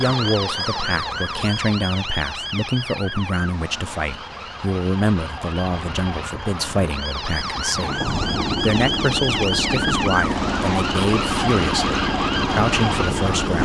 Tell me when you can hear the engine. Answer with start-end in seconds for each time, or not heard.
0.0-13.5.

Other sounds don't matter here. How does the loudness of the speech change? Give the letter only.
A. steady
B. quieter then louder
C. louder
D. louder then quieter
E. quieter
A.